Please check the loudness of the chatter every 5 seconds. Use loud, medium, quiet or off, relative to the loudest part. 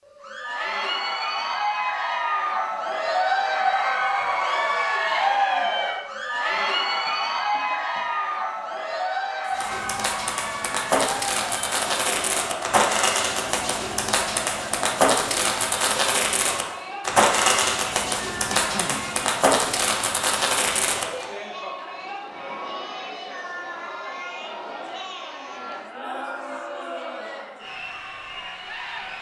loud, loud, medium, medium, medium, medium.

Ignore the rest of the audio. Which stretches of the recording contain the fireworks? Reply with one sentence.
The fireworks can be heard from 9.4 to 21.2 s.